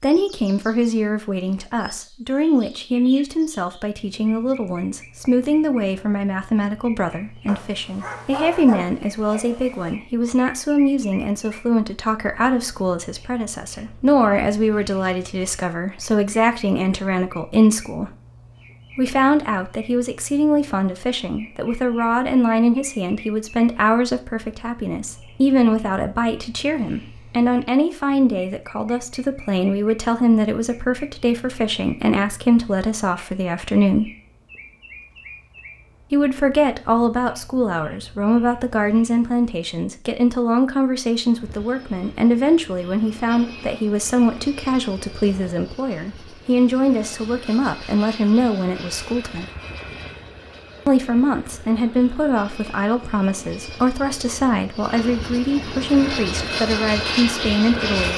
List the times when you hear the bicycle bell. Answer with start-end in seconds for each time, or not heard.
not heard.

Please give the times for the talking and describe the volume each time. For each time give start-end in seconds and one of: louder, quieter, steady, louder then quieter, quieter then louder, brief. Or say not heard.
0.0-18.1 steady
18.9-34.1 steady
36.1-49.5 steady
50.9-58.1 steady.